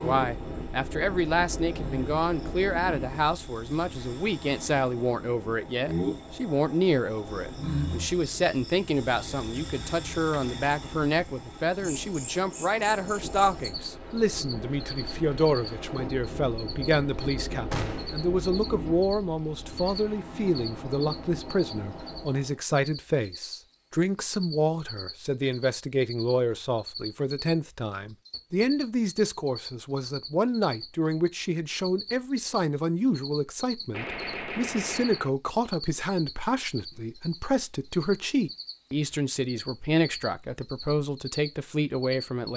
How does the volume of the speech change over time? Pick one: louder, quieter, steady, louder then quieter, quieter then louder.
steady.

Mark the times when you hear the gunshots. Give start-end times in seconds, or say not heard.
17.7-18.1, 33.9-35.3.